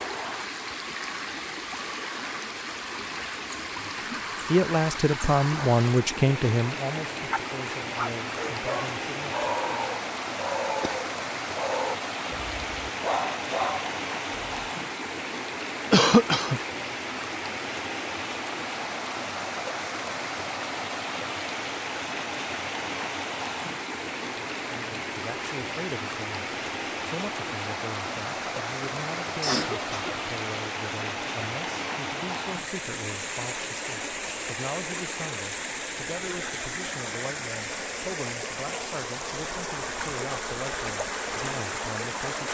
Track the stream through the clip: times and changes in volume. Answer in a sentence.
The stream can be heard from 0.0 to 42.4 s, at a steady volume.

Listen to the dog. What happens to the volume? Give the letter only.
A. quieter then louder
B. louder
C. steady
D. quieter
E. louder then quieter
C.